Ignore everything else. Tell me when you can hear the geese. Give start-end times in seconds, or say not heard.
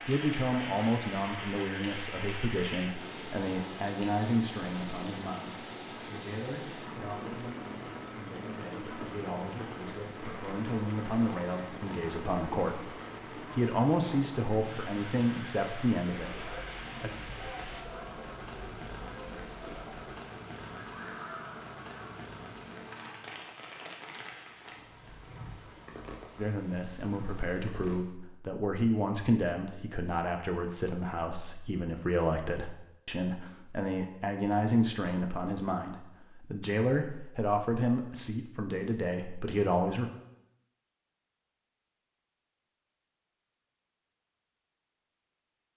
16.1-22.2.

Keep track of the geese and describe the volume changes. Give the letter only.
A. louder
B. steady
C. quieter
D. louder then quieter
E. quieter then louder
B.